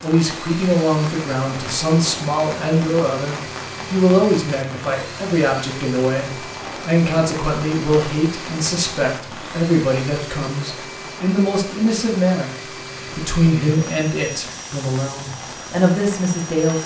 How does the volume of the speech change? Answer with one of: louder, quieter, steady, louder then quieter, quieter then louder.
steady.